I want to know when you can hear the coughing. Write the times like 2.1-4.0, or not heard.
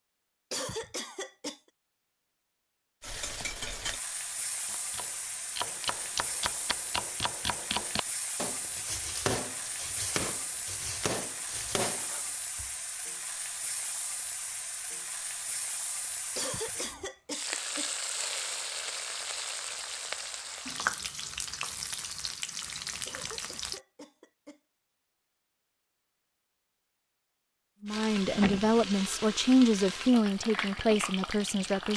0.5-1.6, 16.4-17.9, 23.1-24.6.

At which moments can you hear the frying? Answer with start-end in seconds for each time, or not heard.
3.0-23.8, 27.9-31.9.